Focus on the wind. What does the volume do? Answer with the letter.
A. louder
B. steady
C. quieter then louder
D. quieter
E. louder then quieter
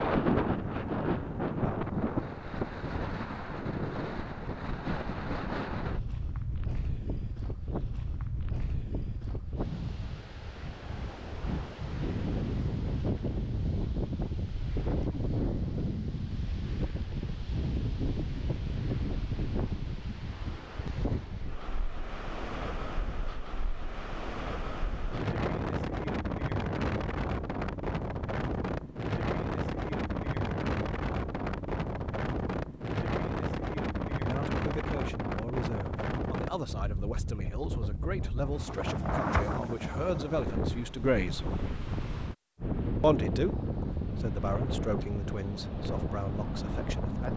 B.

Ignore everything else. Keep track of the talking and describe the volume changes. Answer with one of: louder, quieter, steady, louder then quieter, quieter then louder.
louder then quieter.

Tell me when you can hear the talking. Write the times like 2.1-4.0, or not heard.
34.2-41.5, 43.0-47.3.